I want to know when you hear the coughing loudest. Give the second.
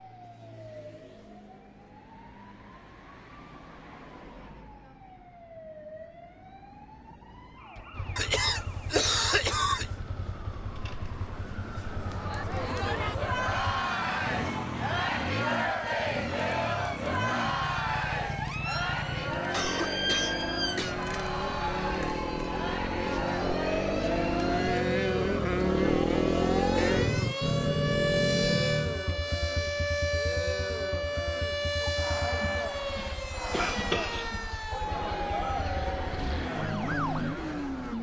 9 s.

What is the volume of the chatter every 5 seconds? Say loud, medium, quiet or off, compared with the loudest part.
off, off, loud, loud, medium, medium, medium, medium.